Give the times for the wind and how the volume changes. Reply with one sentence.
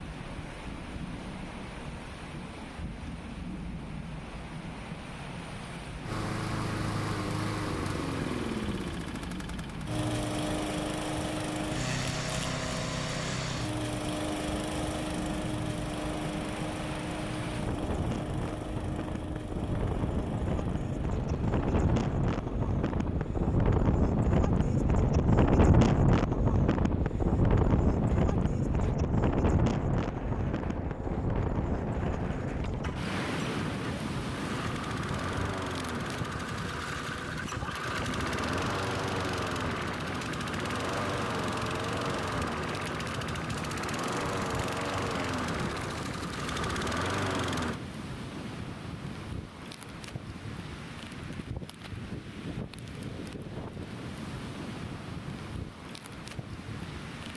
You can hear the wind from 0.0 to 57.3 s, getting louder then quieter.